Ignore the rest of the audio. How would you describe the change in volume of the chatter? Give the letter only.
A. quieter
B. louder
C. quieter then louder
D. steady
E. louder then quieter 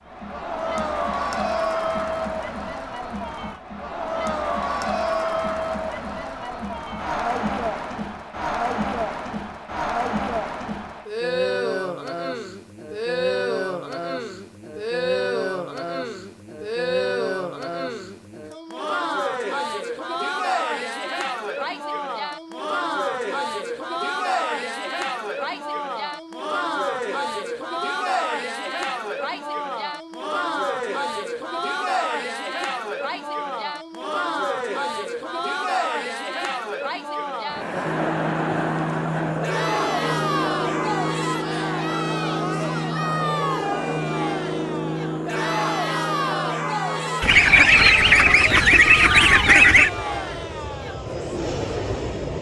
D.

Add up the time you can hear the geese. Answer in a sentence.
The geese can be heard for 3 seconds in total.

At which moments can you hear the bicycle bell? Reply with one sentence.
You can't hear the bicycle bell here.